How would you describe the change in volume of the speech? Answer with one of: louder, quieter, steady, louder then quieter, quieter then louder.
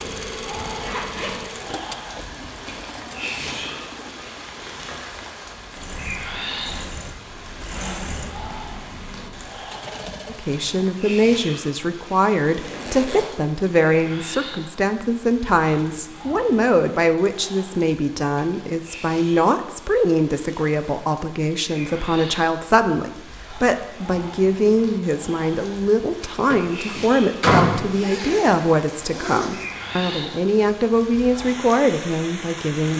steady.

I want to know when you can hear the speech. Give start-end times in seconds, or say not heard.
10.2-32.9.